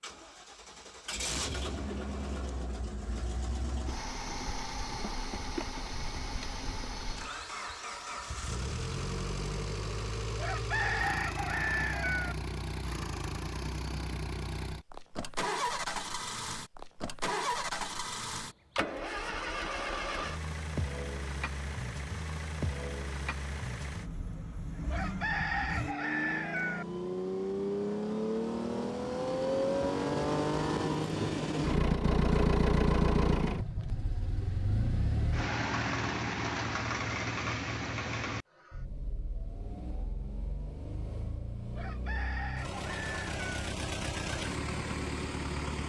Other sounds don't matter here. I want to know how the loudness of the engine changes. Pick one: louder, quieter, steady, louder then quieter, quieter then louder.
louder then quieter.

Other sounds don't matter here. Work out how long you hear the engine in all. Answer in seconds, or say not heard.
46 s.